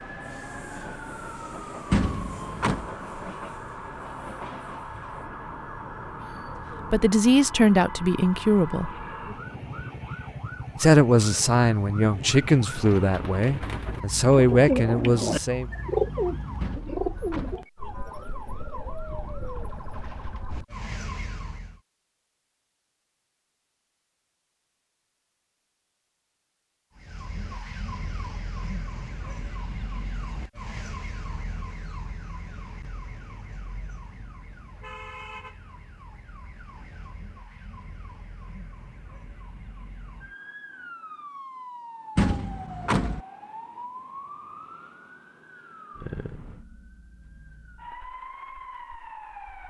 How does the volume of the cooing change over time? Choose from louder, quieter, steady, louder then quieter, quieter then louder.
louder then quieter.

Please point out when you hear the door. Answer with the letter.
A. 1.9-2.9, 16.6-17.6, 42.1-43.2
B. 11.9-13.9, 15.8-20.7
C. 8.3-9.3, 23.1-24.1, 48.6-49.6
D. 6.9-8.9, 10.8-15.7
A.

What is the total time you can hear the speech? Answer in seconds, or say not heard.
7 s.